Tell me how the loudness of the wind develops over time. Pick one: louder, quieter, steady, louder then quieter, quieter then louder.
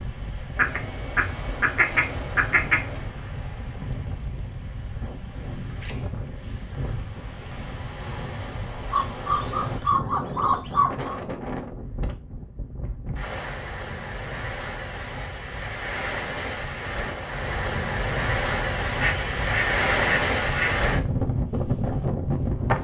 louder.